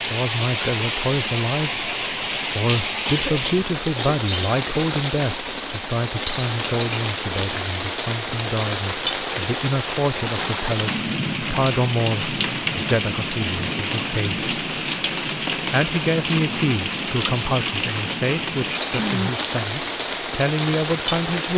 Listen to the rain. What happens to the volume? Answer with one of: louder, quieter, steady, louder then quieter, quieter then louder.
steady.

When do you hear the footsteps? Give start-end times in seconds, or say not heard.
not heard.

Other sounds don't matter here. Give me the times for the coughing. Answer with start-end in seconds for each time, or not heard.
3.0-4.2, 18.9-19.4.